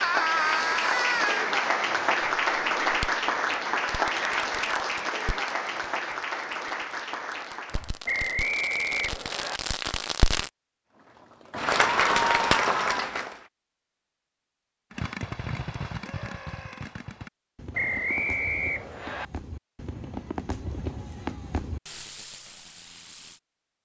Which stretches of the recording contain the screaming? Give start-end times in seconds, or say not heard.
0.0-1.4, 11.8-13.1, 16.0-16.9.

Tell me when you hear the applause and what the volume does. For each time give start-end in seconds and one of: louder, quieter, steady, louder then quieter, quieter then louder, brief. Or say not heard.
0.0-8.0 quieter
10.9-13.4 brief.